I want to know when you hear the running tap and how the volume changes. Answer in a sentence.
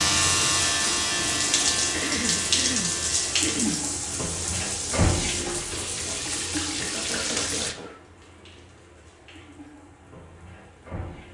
You can hear the running tap from 0.0 to 11.3 s, getting quieter.